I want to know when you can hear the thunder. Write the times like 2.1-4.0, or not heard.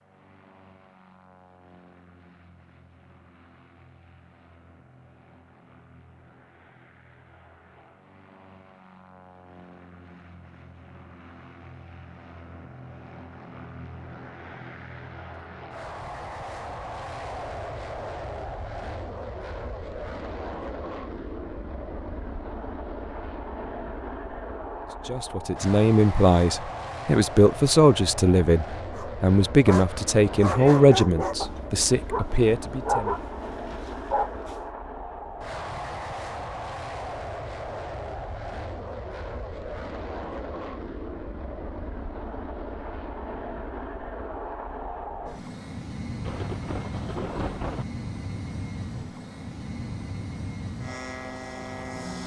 46.2-47.9.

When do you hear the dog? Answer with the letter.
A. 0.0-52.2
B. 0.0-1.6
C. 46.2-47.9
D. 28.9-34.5
D.